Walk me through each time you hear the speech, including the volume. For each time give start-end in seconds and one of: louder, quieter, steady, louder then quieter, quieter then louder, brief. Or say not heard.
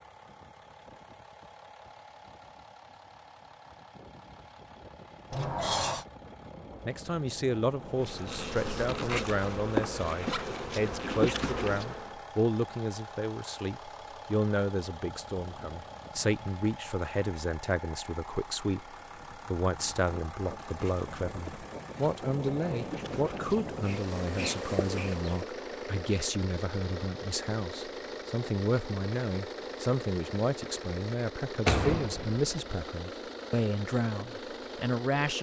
6.8-35.3 steady.